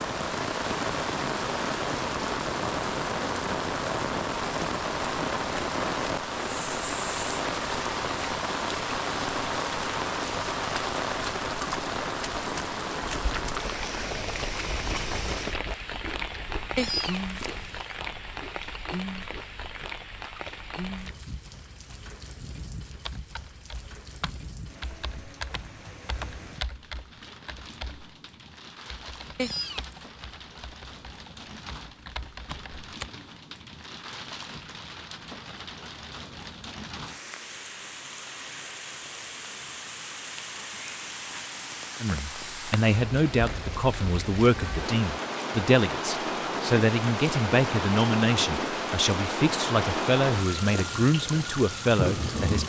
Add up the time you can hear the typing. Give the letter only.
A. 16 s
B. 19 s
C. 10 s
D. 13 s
C.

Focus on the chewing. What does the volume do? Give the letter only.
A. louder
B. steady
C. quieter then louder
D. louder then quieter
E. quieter
E.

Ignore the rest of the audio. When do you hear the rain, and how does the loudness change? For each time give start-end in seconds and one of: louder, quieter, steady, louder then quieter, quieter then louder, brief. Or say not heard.
0.0-52.6 quieter then louder.